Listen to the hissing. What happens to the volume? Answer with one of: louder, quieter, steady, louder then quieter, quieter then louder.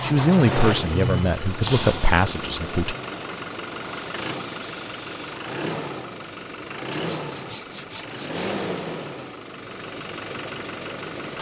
quieter.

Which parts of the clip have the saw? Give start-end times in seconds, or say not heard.
6.9-8.7.